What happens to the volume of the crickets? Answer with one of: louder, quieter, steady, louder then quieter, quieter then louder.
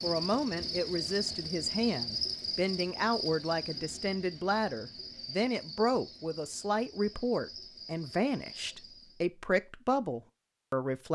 quieter.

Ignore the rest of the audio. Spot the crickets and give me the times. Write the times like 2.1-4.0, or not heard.
0.0-9.2.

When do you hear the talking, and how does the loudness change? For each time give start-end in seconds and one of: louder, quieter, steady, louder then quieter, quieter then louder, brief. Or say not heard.
0.0-11.1 steady.